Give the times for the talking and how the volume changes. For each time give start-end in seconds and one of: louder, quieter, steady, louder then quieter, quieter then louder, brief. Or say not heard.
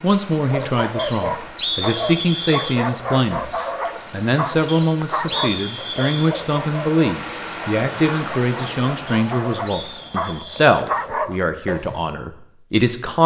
0.0-13.2 steady.